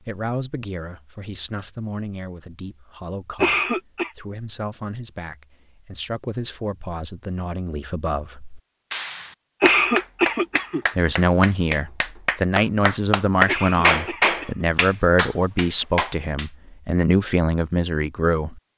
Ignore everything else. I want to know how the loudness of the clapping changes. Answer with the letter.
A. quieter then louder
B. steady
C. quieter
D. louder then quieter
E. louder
D.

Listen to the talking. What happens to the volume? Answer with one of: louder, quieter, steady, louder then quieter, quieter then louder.
louder.